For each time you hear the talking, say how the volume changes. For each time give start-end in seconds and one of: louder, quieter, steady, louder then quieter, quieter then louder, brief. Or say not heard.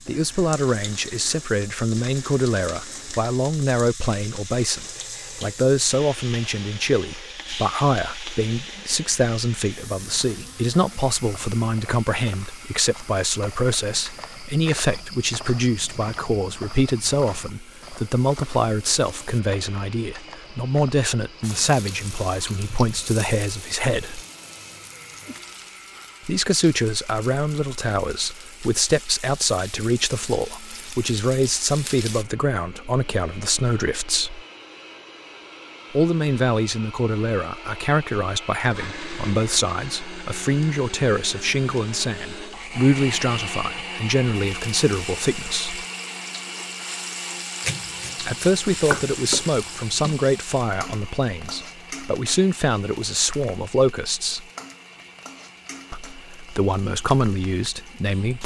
0.1-24.2 steady
26.2-34.4 steady
35.9-45.9 steady
48.2-54.5 quieter then louder
55.9-58.4 brief.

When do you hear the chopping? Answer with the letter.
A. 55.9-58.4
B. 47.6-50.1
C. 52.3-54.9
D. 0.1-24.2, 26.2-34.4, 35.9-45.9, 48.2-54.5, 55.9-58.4
B.